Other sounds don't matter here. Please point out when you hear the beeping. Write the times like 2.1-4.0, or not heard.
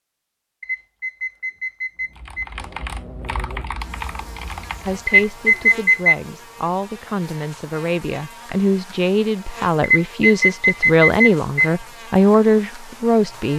0.6-2.5, 5.0-6.2, 9.8-11.7.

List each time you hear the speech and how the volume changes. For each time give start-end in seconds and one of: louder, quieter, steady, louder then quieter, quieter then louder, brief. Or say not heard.
4.8-13.5 louder.